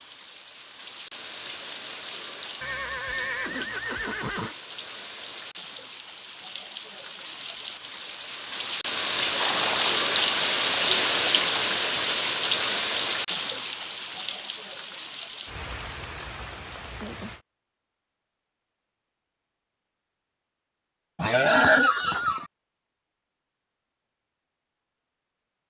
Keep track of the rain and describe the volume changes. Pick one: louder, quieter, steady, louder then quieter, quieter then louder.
louder then quieter.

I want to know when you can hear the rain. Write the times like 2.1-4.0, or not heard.
0.0-17.4.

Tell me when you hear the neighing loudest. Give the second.
22 s.